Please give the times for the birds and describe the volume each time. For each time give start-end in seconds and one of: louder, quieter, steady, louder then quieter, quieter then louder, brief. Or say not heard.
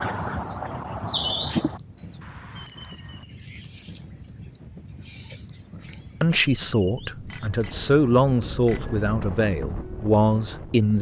0.0-7.1 quieter.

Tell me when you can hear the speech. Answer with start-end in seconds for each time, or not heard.
6.2-10.9.